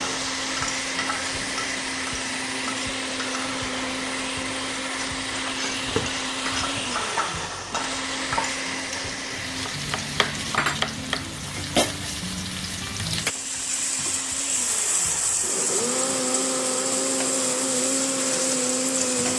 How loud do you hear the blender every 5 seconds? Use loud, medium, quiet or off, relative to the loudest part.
loud, loud, medium, loud.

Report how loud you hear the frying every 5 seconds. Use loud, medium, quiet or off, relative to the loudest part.
medium, medium, loud, loud.